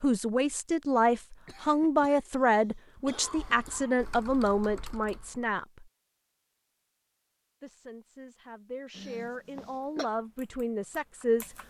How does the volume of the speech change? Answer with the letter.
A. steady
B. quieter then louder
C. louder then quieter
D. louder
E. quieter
B.